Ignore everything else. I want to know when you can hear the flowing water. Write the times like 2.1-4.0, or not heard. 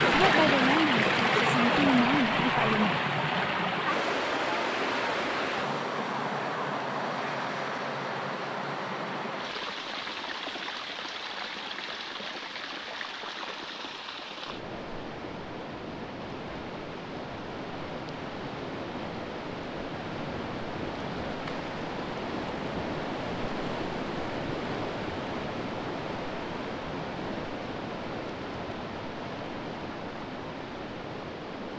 0.0-31.7.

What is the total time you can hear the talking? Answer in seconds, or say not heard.
3 s.